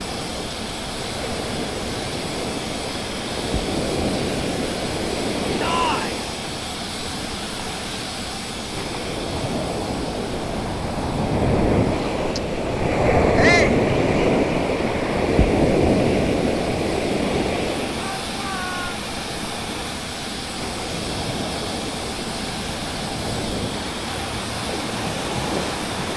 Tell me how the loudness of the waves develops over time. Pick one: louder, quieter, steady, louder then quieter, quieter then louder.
louder then quieter.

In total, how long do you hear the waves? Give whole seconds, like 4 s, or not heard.
26 s.